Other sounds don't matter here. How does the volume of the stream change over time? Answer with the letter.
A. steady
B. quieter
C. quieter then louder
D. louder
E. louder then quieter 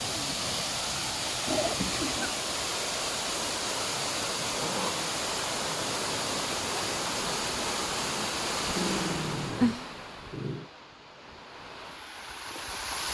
B.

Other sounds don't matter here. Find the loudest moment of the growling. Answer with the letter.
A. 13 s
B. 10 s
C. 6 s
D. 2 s
B.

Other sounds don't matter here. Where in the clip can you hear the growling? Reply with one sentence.
The growling can be heard from 1.4 to 2.4 s, from 4.6 to 5.1 s and from 8.8 to 10.7 s.